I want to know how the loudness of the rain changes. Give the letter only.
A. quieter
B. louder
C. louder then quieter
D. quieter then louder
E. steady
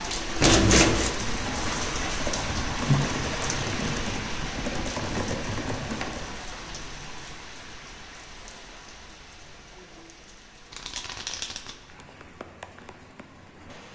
A.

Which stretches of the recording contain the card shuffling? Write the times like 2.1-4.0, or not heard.
0.4-1.1, 6.0-6.8, 10.7-11.8.